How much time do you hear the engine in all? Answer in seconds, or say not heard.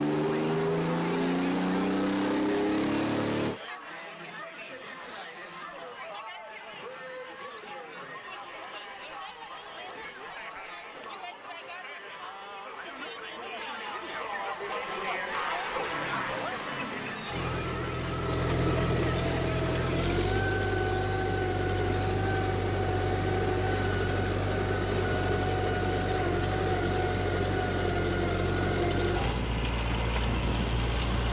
19 s.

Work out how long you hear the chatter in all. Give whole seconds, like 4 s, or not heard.
20 s.